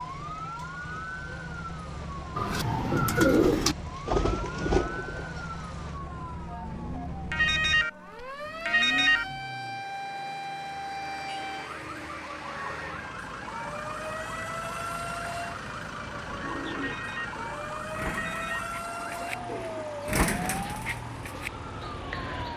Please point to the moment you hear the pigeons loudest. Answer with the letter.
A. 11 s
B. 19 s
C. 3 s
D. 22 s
C.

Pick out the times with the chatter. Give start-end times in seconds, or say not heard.
not heard.